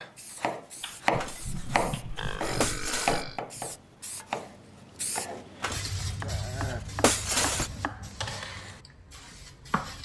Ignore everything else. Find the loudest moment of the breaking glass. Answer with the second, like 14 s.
7 s.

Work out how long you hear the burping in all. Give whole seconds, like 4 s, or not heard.
3 s.